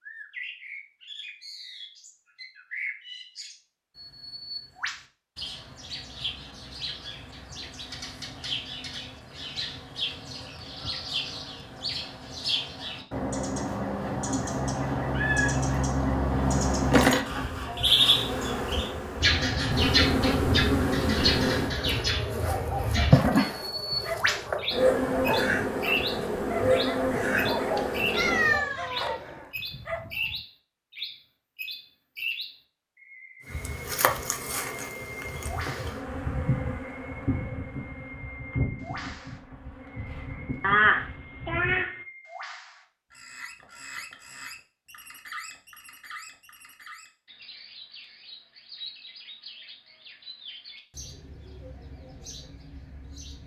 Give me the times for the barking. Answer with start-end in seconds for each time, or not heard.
22.4-30.4.